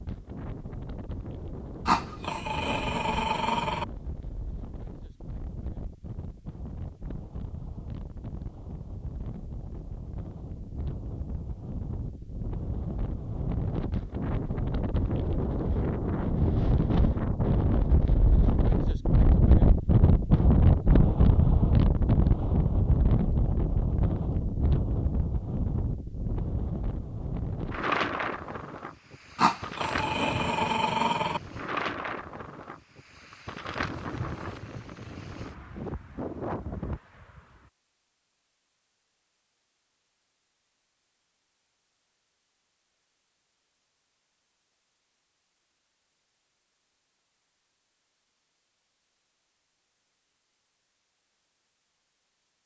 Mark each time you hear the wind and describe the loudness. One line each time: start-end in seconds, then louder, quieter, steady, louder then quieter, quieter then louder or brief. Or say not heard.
0.0-37.7 louder then quieter.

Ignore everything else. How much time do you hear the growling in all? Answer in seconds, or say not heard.
4 s.